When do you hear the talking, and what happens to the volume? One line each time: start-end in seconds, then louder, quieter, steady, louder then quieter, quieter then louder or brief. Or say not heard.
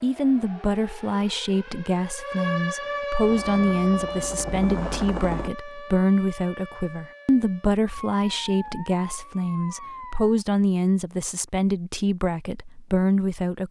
0.0-13.6 steady.